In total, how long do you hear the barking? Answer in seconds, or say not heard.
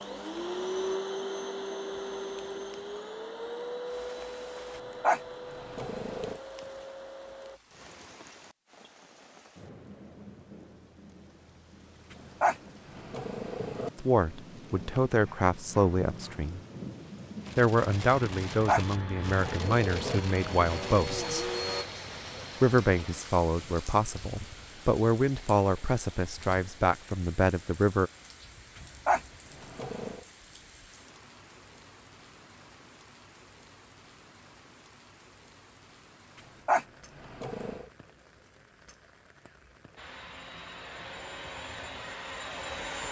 7 s.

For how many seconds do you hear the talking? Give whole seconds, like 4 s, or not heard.
12 s.